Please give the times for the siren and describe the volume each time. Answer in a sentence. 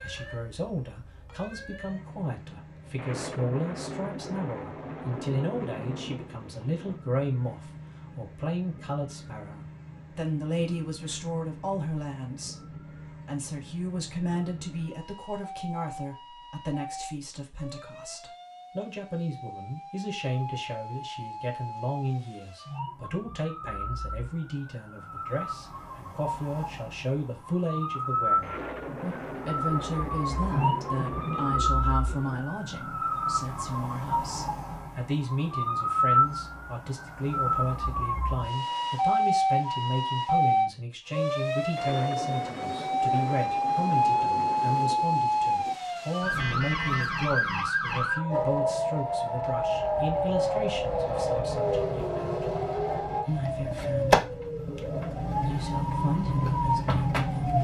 You can hear the siren from 0.0 to 57.5 s, getting louder.